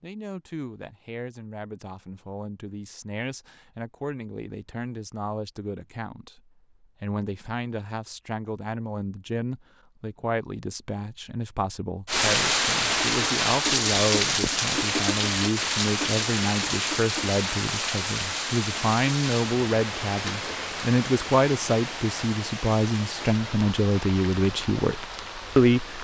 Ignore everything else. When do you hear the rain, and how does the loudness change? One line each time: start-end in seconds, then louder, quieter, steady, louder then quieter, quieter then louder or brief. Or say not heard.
12.1-25.9 quieter.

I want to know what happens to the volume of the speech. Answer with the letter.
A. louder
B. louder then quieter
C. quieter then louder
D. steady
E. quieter
A.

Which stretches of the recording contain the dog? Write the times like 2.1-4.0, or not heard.
not heard.